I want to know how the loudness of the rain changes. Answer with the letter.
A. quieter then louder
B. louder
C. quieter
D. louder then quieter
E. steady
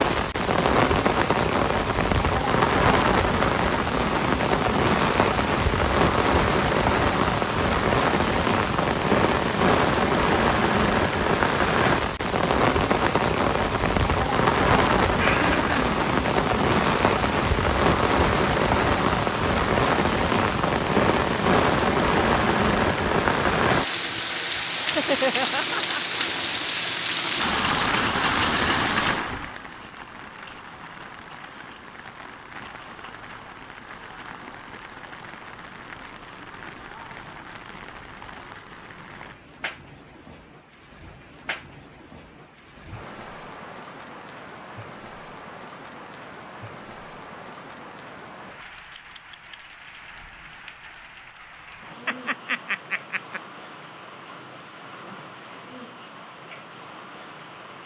C.